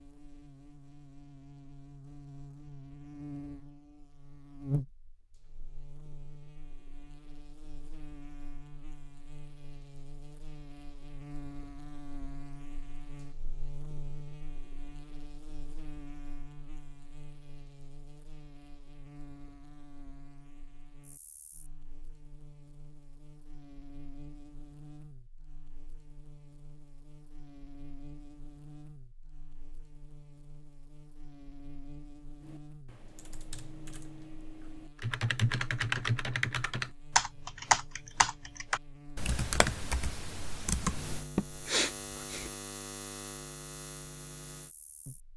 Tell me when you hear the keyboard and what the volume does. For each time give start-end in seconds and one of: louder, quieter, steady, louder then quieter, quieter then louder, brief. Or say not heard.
32.4-41.2 louder then quieter.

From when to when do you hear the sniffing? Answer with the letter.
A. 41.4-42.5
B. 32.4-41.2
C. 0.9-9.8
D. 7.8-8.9
A.